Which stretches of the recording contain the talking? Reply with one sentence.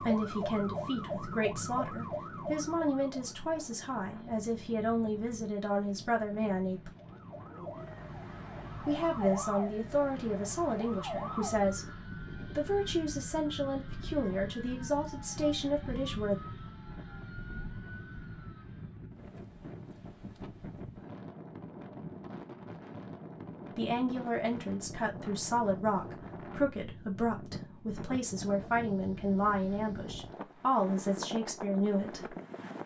You can hear the talking from 0.0 to 6.9 s, from 8.8 to 11.9 s, from 12.6 to 16.4 s and from 23.8 to 32.4 s.